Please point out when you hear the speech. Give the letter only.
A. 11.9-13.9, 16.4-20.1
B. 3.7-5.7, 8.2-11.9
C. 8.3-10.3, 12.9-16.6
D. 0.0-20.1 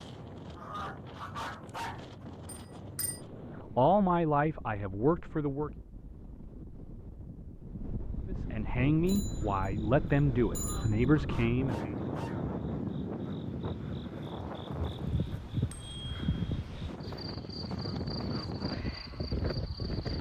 B.